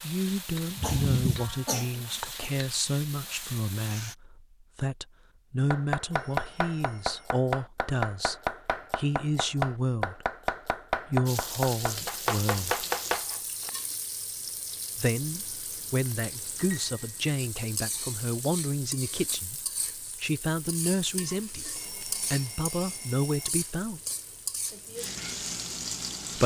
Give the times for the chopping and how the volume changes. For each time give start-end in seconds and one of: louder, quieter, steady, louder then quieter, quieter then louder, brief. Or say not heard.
5.7-13.7 steady.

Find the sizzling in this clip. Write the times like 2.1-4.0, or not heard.
0.0-4.2, 11.2-26.4.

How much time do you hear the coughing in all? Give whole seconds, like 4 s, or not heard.
2 s.